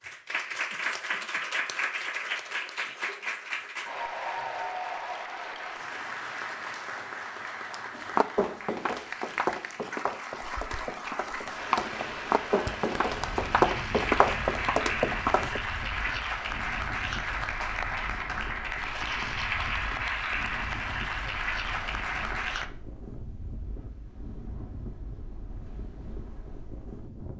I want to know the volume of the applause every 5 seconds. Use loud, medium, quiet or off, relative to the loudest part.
loud, medium, loud, loud, loud, off.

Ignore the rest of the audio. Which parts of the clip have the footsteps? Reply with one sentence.
You can hear the footsteps from 8.0 to 15.6 s.